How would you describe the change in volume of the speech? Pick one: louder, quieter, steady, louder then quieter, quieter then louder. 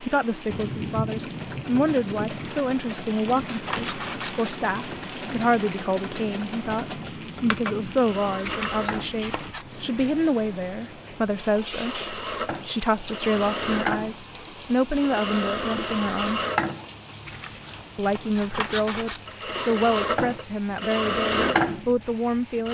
steady.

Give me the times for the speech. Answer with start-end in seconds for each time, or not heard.
0.0-16.4, 17.9-22.6.